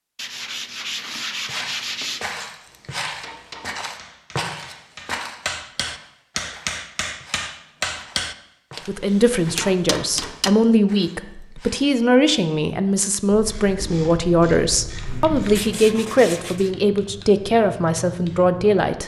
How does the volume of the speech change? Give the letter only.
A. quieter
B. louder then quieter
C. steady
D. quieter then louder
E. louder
C.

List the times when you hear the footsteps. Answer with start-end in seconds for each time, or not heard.
1.4-11.9.